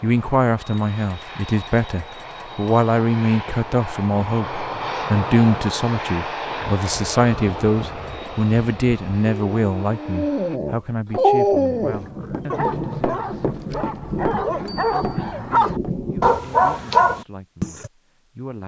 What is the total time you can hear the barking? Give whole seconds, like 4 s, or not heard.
11 s.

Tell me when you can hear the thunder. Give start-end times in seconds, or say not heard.
11.7-16.4.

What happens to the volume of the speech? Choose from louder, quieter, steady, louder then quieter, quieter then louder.
quieter.